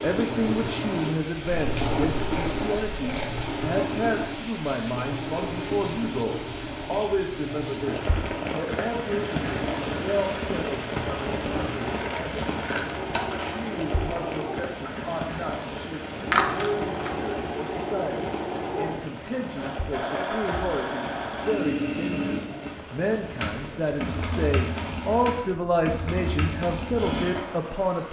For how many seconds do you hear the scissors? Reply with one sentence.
The scissors can be heard for 5 seconds in total.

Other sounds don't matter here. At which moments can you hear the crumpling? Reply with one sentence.
The crumpling can be heard from 16.3 to 17.1 s.